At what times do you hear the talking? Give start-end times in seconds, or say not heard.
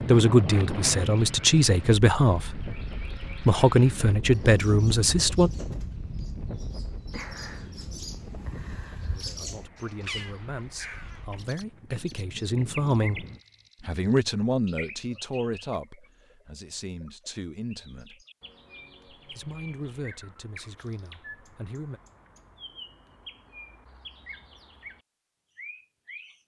0.0-5.5, 9.2-18.2, 19.1-22.0.